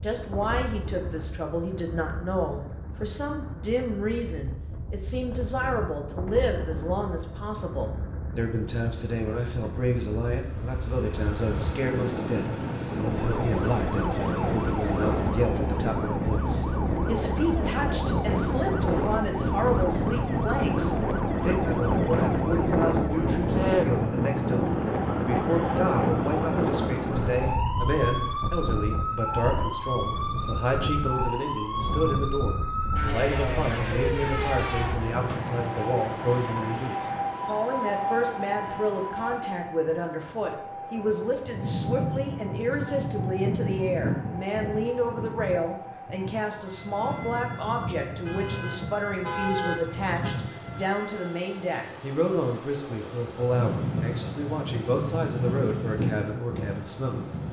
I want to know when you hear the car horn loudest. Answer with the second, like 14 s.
50 s.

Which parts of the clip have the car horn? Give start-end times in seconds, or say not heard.
48.0-50.4.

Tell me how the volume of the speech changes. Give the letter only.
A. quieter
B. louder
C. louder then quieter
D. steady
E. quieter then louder
D.